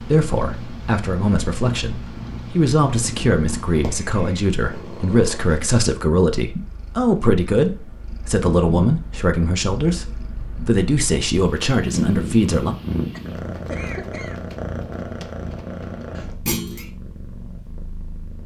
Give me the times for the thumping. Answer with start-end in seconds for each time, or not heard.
16.4-16.9.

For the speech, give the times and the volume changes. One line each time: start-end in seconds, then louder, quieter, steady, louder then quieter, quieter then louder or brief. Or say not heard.
0.0-12.8 steady.